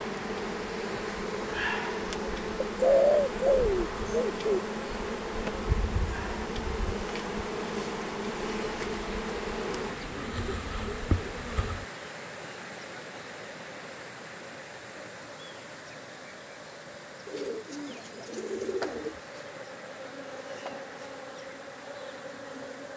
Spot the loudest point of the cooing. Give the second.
3 s.